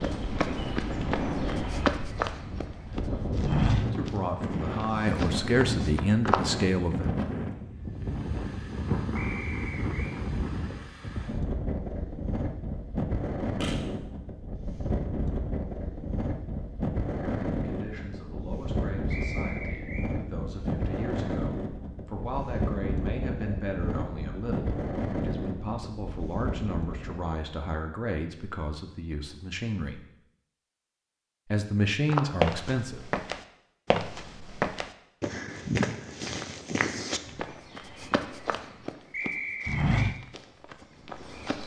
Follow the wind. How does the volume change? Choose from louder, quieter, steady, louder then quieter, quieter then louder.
steady.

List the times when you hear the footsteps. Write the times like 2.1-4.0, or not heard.
0.0-6.5, 32.0-41.6.